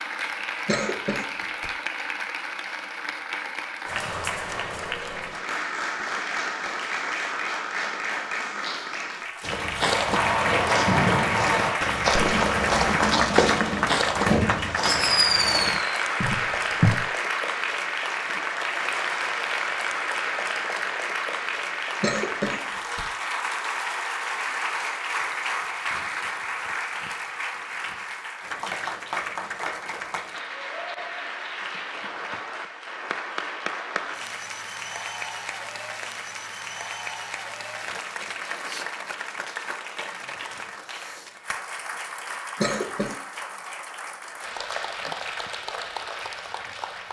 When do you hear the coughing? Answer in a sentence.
The coughing can be heard from 0.7 to 1.7 s, from 22.0 to 23.1 s and from 42.5 to 43.1 s.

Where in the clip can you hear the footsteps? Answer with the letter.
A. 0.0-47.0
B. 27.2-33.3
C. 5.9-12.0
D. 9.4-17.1
D.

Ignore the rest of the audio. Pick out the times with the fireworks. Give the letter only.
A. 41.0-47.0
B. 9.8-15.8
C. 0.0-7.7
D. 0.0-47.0
B.